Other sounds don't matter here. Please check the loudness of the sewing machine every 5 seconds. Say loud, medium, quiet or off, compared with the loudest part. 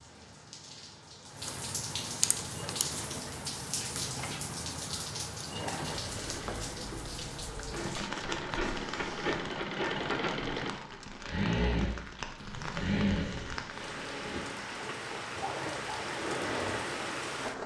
medium, loud, loud, loud.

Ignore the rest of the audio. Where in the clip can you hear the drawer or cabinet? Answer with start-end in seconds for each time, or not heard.
12.3-12.8.